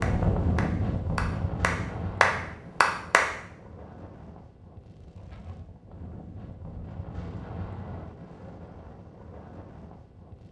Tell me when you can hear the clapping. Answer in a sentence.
You can hear the clapping from 0.0 to 3.3 s.